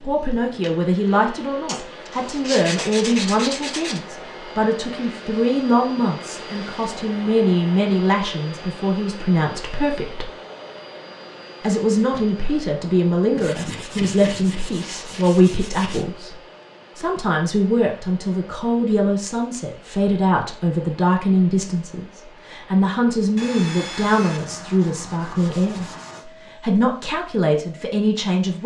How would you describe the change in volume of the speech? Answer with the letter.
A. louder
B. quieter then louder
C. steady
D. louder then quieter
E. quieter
C.